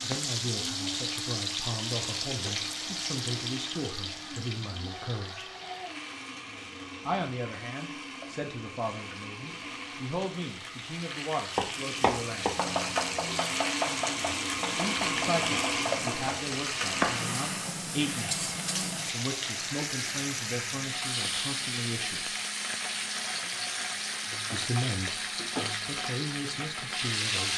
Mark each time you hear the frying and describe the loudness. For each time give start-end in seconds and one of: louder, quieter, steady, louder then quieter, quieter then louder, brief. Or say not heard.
0.0-27.5 quieter then louder.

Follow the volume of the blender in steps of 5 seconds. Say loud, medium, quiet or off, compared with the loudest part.
medium, medium, loud, loud, medium, medium.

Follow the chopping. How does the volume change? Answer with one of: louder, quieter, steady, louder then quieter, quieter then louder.
quieter.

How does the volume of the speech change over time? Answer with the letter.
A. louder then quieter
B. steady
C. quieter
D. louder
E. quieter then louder
B.